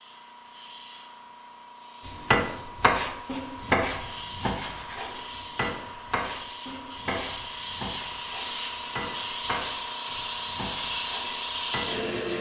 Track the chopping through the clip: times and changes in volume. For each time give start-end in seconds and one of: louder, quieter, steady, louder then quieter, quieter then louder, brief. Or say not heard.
2.0-12.1 quieter.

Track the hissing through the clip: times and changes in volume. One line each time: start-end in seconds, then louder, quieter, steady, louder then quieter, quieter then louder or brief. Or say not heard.
0.0-12.3 louder.